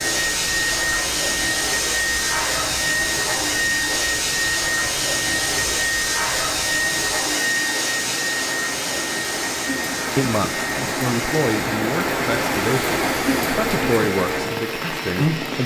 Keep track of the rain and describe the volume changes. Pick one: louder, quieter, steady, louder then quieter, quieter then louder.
louder.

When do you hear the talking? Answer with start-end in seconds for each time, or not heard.
10.2-15.6.